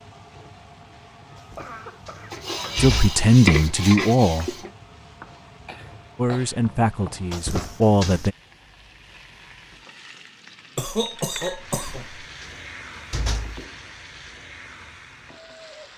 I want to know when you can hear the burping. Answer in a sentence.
You can't hear the burping here.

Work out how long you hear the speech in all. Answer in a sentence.
You can hear the speech for 4 seconds altogether.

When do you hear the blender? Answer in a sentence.
The blender can't be heard in this clip.